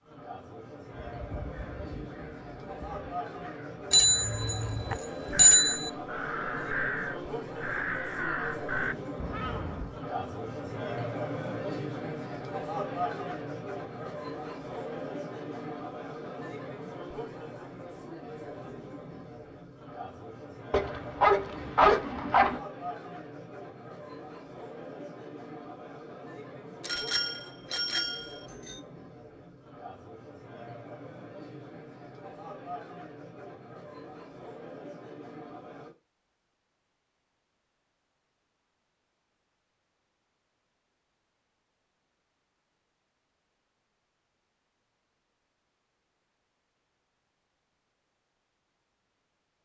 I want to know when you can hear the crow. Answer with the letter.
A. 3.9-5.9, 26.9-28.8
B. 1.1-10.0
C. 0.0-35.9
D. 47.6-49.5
B.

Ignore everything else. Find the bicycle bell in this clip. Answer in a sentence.
You can hear the bicycle bell from 3.9 to 5.9 s and from 26.9 to 28.8 s.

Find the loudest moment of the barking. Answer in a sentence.
The loudest moment of the barking is at 22 seconds.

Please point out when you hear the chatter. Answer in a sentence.
The chatter can be heard from 0.0 to 35.9 s.